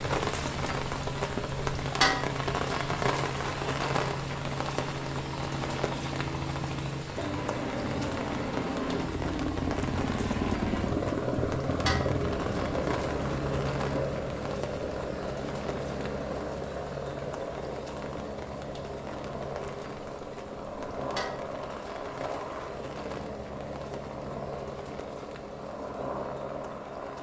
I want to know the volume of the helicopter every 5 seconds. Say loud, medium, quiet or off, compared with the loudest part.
medium, loud, loud, medium, medium, medium.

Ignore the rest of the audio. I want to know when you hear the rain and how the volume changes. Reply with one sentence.
The rain can be heard from 0.0 to 27.1 s, getting quieter.